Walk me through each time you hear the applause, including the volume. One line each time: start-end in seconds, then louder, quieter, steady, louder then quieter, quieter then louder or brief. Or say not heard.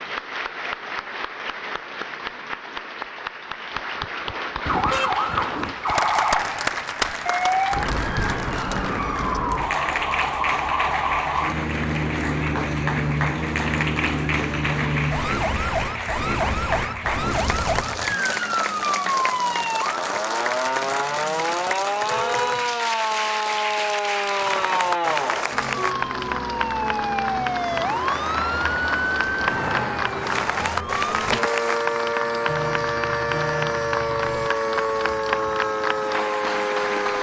0.0-37.1 steady.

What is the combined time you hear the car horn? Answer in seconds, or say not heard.
4 s.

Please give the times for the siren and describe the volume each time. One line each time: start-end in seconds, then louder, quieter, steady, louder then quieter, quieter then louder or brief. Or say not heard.
4.6-37.1 steady.